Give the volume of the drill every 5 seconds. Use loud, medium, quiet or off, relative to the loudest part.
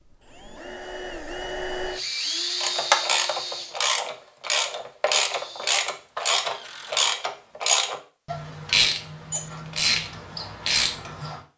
loud, quiet, off.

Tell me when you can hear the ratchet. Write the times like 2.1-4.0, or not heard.
2.5-11.4.